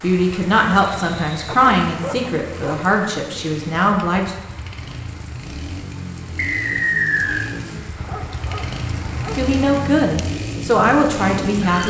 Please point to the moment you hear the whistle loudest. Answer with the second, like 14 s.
7 s.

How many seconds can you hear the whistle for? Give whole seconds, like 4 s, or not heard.
2 s.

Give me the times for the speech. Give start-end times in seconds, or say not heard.
0.0-4.3, 9.3-11.8.